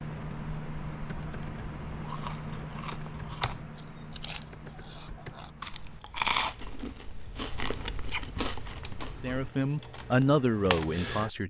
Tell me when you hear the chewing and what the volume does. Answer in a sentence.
The chewing can be heard from 1.9 to 9.5 s, getting louder then quieter.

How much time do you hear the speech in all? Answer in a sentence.
The speech can be heard for 2 seconds in total.